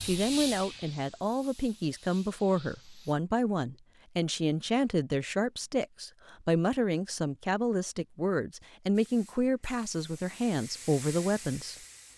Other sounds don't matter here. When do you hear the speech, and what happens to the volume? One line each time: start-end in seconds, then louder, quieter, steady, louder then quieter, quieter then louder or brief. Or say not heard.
0.0-11.8 steady.